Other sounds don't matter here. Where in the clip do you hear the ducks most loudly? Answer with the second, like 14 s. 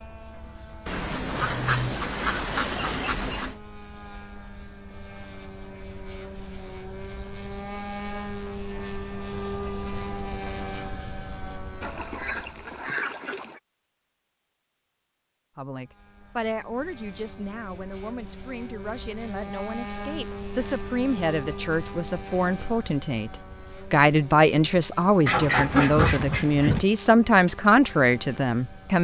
26 s.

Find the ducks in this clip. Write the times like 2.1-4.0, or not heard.
0.8-3.5, 11.8-13.6, 25.2-26.9.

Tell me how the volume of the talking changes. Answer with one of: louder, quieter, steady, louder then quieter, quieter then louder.
louder.